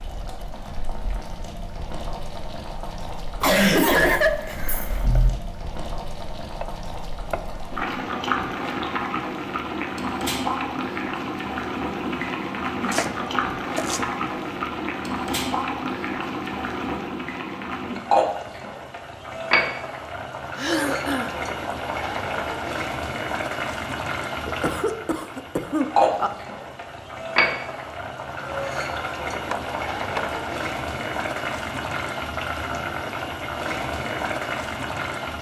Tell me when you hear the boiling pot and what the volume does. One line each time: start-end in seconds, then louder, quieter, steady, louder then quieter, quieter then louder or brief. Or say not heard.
0.0-35.3 louder.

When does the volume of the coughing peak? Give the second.
4 s.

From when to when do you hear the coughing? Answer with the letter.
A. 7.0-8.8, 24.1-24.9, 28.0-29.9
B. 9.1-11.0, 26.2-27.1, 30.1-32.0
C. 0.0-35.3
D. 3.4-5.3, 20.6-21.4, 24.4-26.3
D.